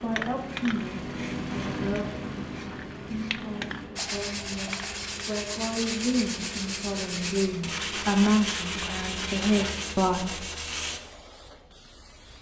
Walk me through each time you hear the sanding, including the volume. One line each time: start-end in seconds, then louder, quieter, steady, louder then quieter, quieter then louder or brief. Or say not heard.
4.0-11.0 steady.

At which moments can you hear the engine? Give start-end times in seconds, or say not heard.
0.0-4.9.